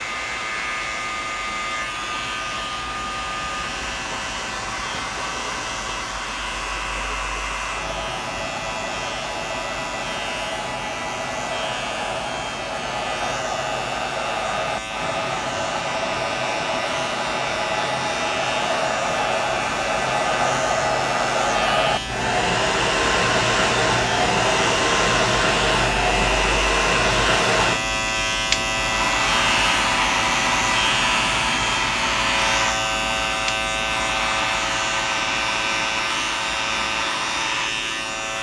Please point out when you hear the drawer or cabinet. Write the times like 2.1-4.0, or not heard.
not heard.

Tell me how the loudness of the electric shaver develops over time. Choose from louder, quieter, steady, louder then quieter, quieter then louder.
louder.